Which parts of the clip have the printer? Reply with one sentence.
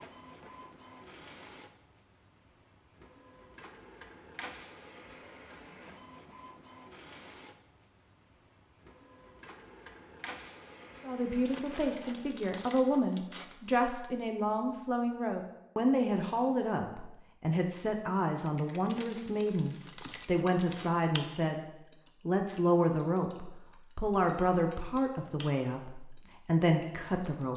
You can hear the printer from 0.0 to 12.4 s.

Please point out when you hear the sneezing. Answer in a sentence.
The sneezing can't be heard in this clip.